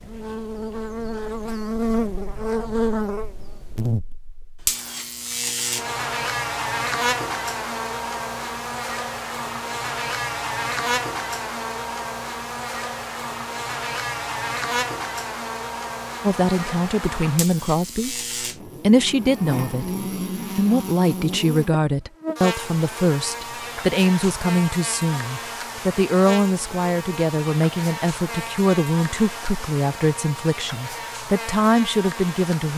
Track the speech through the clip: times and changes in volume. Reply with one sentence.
You can hear the speech briefly from 16.2 to 18.2 s; and from 18.8 to 32.7 s, at a steady volume.